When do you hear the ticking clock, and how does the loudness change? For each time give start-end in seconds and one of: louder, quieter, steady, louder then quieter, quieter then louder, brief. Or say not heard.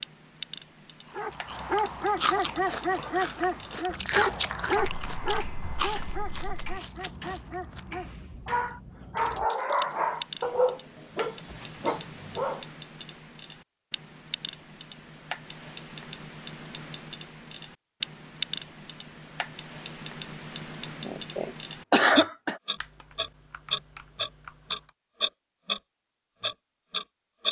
0.0-25.8 louder
26.4-27.4 brief.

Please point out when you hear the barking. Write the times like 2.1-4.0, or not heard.
1.1-12.7.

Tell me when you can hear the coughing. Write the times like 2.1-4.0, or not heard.
21.1-22.6.